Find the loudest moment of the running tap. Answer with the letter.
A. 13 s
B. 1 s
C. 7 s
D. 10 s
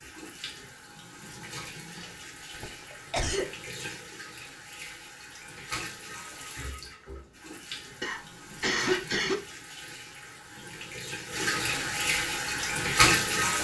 A.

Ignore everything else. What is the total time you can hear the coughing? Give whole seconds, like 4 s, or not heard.
2 s.